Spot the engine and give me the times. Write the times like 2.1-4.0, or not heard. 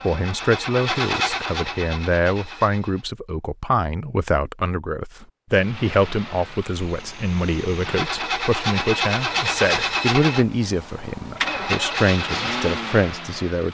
0.0-3.0, 5.5-13.6.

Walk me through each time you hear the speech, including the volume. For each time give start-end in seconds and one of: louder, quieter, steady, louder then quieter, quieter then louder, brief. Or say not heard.
0.0-13.6 steady.